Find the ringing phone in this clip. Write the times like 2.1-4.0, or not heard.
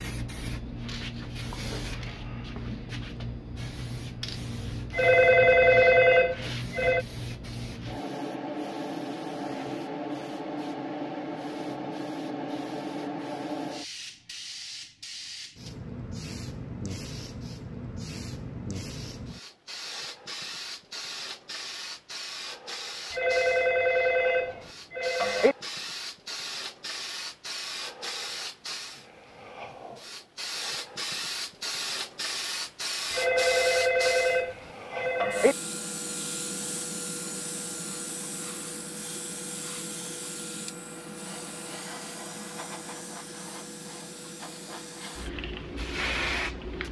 4.9-7.0, 23.1-25.6, 33.1-35.5.